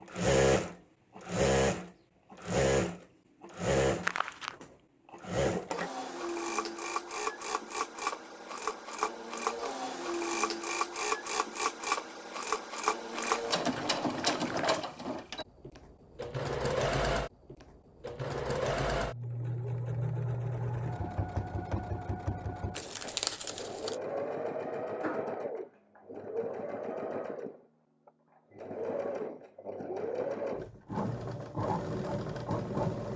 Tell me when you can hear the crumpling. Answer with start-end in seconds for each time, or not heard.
4.0-4.5, 13.1-14.8, 22.8-23.9.